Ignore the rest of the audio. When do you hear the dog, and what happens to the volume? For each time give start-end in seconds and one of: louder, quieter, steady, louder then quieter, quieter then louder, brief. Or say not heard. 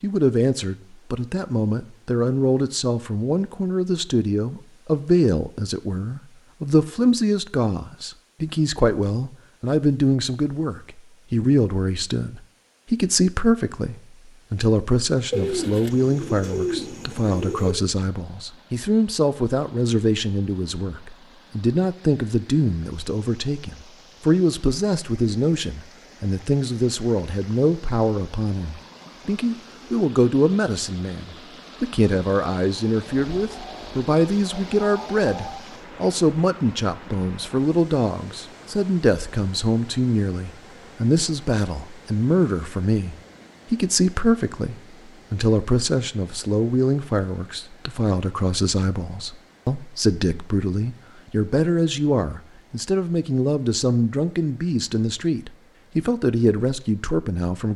not heard.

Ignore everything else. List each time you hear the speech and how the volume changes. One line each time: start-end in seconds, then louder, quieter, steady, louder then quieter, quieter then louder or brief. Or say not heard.
0.0-57.7 steady.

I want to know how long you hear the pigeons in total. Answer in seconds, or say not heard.
5 s.